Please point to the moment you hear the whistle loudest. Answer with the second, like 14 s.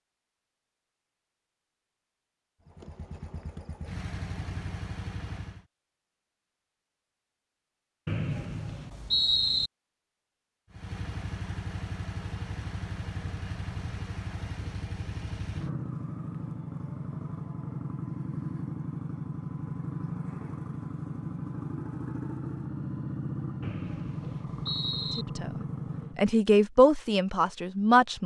9 s.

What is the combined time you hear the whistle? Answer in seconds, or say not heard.
3 s.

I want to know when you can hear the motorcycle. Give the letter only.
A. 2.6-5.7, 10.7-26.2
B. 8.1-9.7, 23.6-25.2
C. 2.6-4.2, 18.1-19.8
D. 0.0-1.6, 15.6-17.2
A.